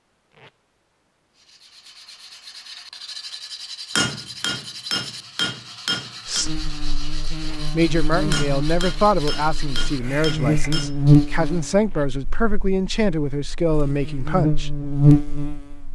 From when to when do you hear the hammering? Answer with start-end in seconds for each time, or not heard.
4.0-6.5, 8.3-11.0.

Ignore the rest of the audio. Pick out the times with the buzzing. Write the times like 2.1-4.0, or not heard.
6.4-15.9.